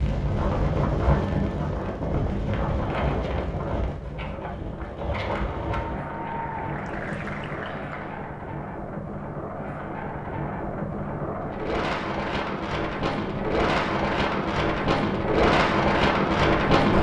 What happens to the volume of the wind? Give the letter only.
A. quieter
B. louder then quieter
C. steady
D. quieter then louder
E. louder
D.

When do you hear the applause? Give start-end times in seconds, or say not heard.
5.7-8.3.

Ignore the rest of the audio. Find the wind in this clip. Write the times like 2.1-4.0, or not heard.
0.0-16.9.